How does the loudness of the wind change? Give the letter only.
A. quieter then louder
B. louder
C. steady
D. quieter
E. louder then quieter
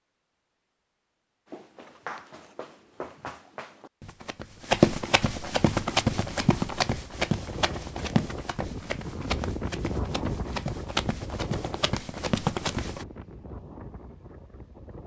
E.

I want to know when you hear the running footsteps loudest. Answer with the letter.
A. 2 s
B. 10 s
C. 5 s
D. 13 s
C.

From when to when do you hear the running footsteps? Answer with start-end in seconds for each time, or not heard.
1.4-13.1.